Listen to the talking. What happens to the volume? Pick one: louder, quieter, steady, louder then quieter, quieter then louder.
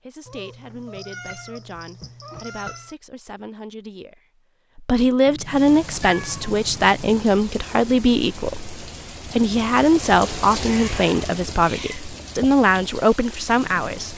louder.